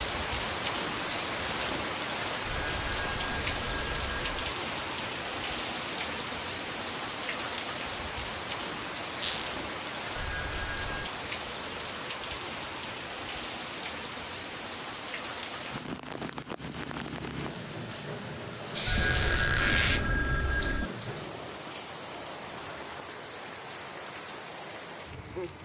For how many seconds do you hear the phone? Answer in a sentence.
The phone can be heard for 5 seconds in total.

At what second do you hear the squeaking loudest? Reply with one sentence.
The loudest moment of the squeaking is at 20 seconds.